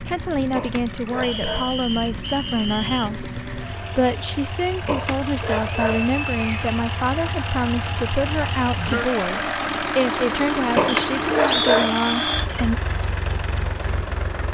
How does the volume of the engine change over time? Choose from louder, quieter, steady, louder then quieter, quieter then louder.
louder.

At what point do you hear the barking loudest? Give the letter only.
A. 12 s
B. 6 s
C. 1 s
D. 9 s
A.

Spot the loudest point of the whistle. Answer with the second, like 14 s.
12 s.